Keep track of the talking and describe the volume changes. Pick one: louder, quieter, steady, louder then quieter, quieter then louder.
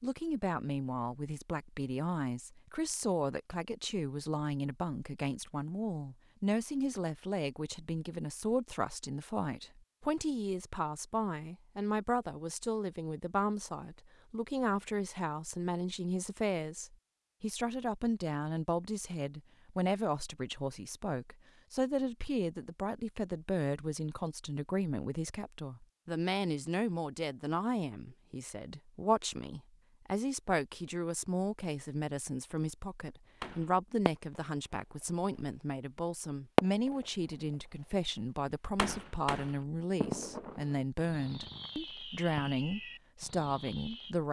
steady.